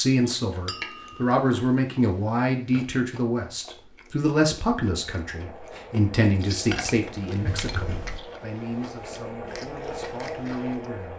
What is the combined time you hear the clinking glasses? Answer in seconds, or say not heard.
2 s.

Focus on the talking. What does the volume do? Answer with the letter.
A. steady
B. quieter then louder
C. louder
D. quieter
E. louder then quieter
D.